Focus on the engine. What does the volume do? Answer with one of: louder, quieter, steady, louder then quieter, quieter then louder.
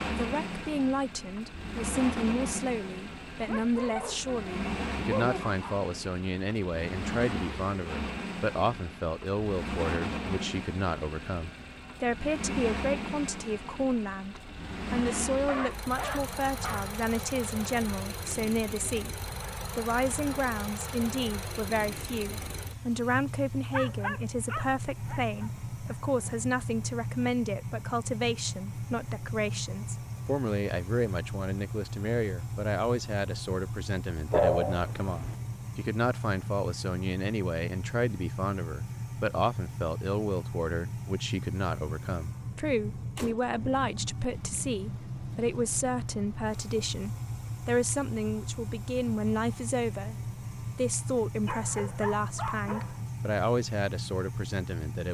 steady.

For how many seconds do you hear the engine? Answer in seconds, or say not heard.
55 s.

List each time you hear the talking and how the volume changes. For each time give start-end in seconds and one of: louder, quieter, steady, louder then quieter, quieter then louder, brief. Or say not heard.
0.0-55.0 steady.